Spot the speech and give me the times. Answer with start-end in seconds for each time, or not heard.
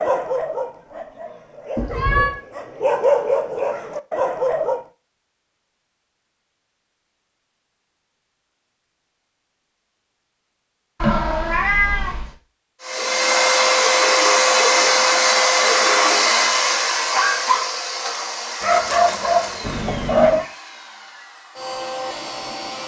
not heard.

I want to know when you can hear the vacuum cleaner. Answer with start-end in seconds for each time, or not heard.
12.8-22.8.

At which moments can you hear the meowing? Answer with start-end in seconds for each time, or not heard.
1.8-2.4, 11.0-12.3, 19.6-20.4.